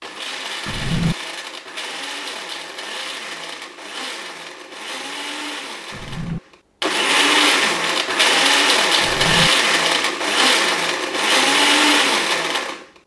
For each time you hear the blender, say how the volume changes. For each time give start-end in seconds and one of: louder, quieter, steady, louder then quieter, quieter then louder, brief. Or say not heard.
0.0-12.8 louder.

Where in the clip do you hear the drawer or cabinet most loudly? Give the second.
1 s.